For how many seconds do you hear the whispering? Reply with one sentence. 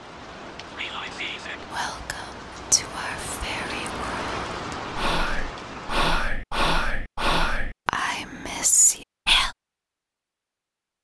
The whispering can be heard for 9 seconds in total.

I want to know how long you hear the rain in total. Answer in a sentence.
The rain can be heard for 6 seconds in total.